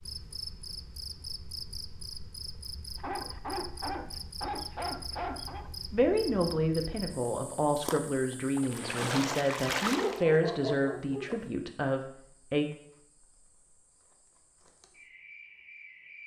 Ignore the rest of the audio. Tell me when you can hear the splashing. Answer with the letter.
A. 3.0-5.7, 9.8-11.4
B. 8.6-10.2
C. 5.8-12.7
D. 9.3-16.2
B.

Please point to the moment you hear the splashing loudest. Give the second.
10 s.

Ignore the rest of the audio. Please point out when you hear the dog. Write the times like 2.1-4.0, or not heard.
3.0-5.7, 9.8-11.4.